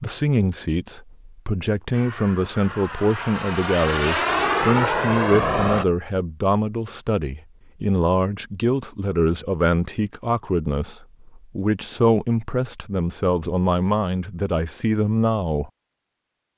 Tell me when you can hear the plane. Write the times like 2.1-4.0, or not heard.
1.9-5.8.